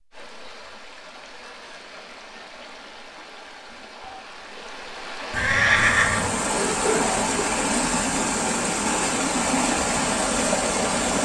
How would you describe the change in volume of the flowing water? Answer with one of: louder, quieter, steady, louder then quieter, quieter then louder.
louder.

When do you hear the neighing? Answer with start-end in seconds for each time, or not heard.
5.3-6.3.